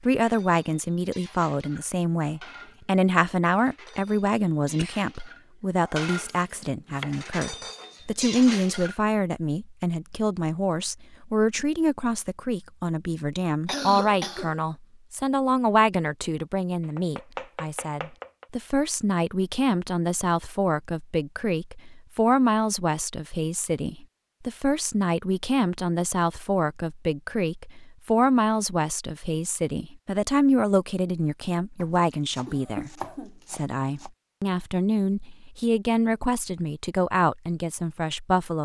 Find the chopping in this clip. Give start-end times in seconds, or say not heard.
6.3-7.7, 16.8-18.4, 31.8-34.1.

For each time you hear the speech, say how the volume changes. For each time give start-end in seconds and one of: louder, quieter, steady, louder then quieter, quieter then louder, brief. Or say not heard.
0.0-38.6 steady.